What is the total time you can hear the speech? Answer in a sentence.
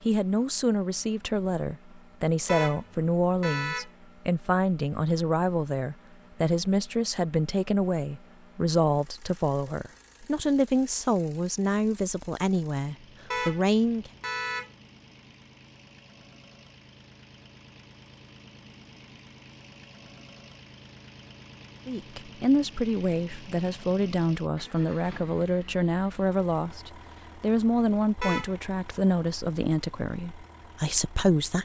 You can hear the speech for 24 seconds altogether.